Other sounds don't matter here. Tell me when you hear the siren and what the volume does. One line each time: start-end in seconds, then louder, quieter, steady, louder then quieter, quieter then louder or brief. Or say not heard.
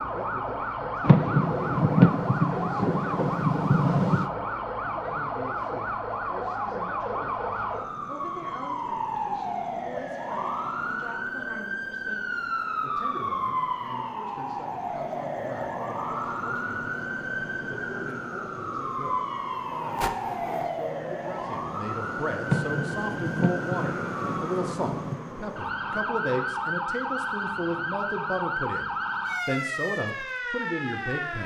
0.0-31.4 steady.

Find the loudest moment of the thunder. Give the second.
2 s.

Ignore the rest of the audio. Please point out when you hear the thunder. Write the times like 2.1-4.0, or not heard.
1.0-4.2, 22.4-25.1.